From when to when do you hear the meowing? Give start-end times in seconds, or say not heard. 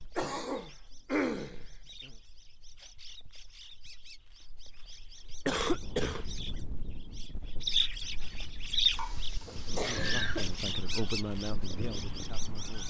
not heard.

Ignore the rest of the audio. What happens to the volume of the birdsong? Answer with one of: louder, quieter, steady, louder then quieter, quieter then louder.
louder then quieter.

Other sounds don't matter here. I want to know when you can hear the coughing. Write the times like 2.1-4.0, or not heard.
0.1-2.1, 5.5-6.2, 8.9-10.6.